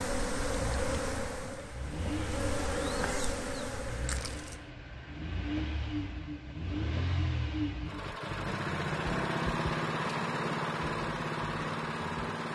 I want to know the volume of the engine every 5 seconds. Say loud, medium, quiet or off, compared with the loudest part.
medium, loud, loud.